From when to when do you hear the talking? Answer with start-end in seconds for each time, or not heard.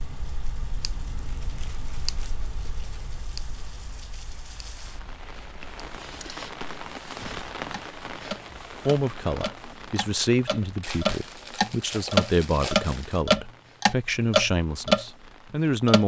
8.8-16.0.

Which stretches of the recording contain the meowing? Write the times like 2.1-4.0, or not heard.
not heard.